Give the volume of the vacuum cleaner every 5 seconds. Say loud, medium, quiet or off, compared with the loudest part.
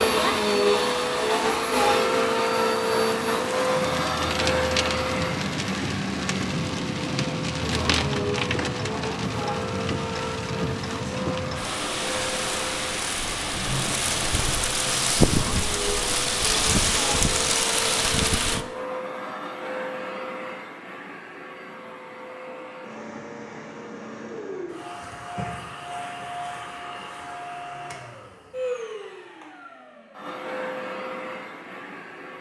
loud, medium, medium, medium, quiet, quiet, quiet.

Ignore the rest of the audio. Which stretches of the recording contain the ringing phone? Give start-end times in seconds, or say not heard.
not heard.